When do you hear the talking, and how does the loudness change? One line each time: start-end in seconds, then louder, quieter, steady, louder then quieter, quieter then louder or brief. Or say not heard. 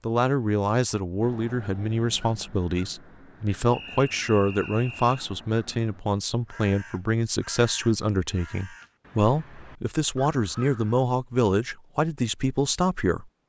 0.1-13.2 steady.